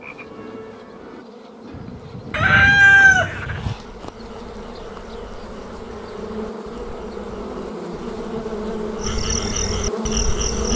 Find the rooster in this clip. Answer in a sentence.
You can hear the rooster from 2.3 to 3.8 s.